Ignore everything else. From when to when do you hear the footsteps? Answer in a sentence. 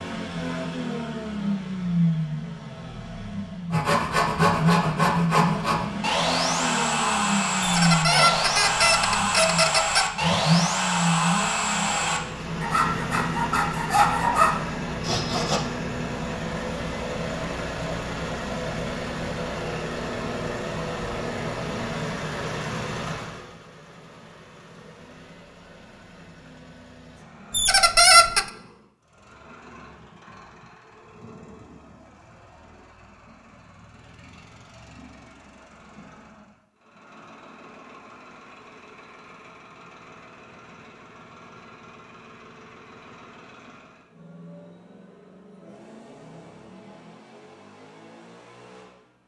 The footsteps can't be heard in this clip.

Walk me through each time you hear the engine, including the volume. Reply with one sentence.
The engine can be heard from 0.0 to 49.2 s, getting quieter.